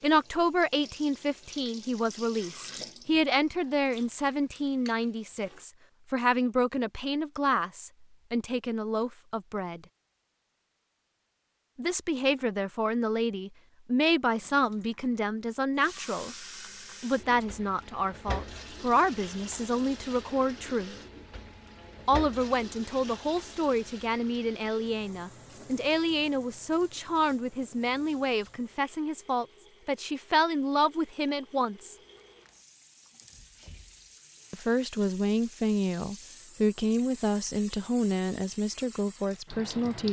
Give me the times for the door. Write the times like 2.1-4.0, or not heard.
33.2-34.1.